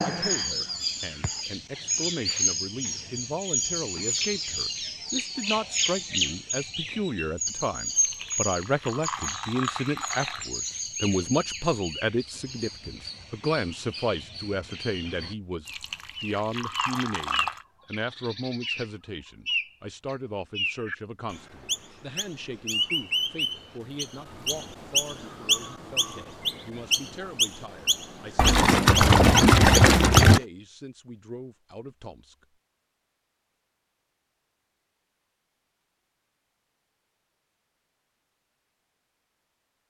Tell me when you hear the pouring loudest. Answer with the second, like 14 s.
30 s.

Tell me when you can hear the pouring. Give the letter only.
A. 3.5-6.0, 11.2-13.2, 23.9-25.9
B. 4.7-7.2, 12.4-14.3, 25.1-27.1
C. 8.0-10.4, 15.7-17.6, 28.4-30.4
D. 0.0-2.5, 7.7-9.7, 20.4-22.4
C.